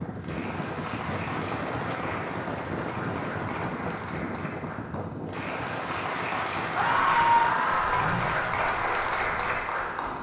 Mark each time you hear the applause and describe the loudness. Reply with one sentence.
The applause can be heard from 0.0 to 10.1 s, getting louder.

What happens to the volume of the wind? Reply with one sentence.
The loudness of the wind goes down.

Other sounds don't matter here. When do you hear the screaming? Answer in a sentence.
You can hear the screaming from 6.7 to 8.1 s.